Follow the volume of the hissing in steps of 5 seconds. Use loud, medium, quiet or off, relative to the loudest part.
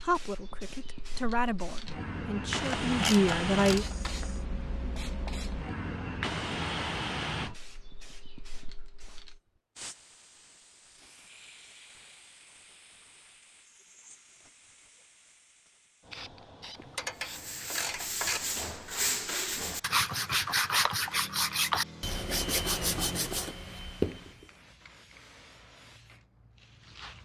loud, loud, quiet, quiet, quiet, quiet.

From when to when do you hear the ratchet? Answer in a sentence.
You can hear the ratchet from 2.6 to 4.5 s and from 16.8 to 18.4 s.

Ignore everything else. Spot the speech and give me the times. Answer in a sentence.
You can hear the speech from 0.0 to 3.9 s.